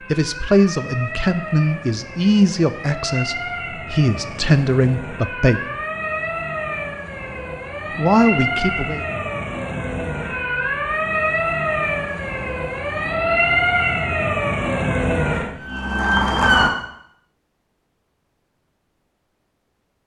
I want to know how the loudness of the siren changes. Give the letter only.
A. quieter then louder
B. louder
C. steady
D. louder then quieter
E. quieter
B.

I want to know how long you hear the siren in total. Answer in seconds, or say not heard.
17 s.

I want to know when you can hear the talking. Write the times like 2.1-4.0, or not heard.
0.1-5.6, 8.0-9.1.